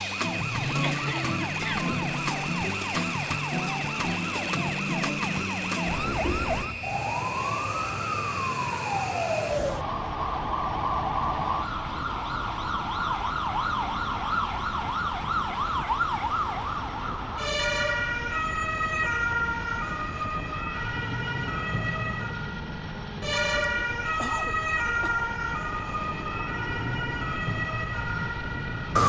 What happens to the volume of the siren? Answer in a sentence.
The loudness of the siren stays about the same.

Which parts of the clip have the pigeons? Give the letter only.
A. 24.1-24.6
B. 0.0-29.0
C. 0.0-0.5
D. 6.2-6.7
D.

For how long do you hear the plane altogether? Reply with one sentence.
The plane can be heard for 29 seconds in total.